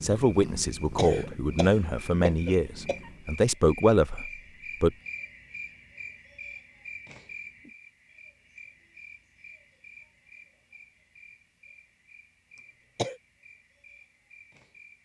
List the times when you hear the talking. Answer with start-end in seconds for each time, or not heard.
0.0-5.0.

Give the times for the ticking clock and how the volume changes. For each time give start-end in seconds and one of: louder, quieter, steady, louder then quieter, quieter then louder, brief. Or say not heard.
not heard.